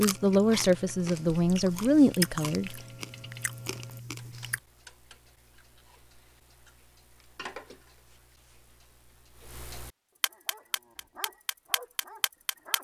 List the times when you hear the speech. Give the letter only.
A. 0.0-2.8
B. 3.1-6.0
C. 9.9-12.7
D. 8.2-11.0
A.